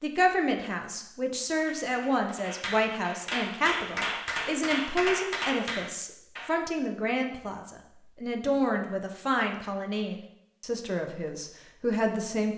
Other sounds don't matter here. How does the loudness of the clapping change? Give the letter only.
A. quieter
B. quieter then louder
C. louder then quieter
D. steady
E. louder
E.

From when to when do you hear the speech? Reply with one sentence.
You can hear the speech from 0.0 to 12.5 s.